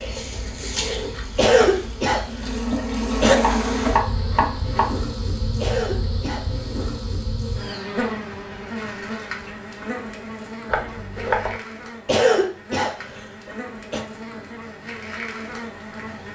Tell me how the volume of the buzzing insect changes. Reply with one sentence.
The loudness of the buzzing insect goes down.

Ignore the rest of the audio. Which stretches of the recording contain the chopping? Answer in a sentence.
You can hear the chopping from 3.4 to 5.0 s and from 10.7 to 11.6 s.